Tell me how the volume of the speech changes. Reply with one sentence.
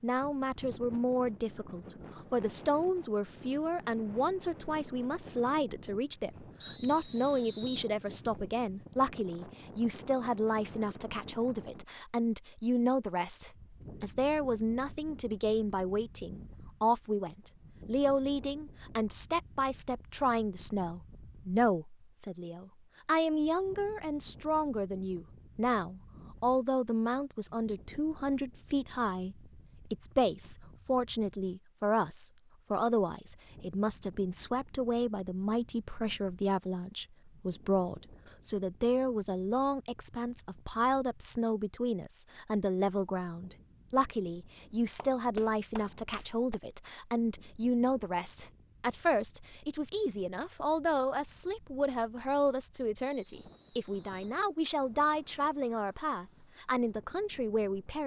The volume of the speech stays about the same.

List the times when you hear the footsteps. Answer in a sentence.
The footsteps can't be heard in this clip.